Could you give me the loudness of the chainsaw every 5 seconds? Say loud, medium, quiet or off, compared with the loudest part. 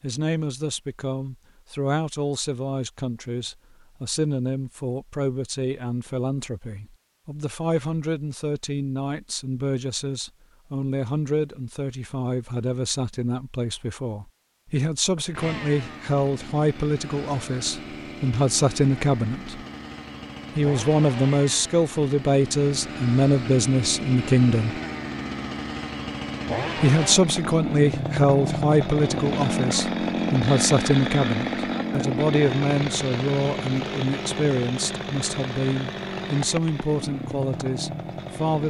off, off, off, medium, medium, loud, loud, medium.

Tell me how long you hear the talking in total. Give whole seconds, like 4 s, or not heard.
36 s.